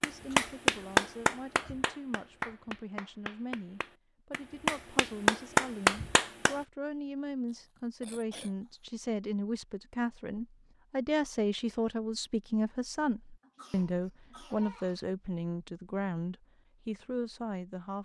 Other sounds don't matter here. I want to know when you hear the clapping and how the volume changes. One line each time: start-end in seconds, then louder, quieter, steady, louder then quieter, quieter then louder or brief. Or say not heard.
0.0-6.6 quieter then louder.